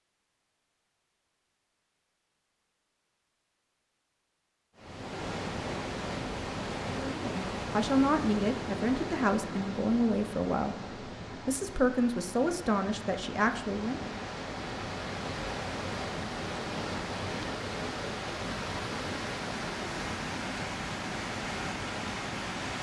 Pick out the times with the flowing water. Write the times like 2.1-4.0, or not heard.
4.8-22.7.